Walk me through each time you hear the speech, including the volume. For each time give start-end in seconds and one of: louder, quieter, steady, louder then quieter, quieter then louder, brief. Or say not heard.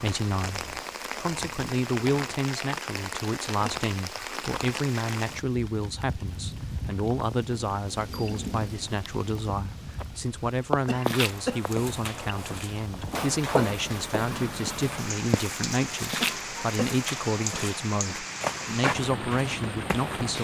0.0-20.4 steady.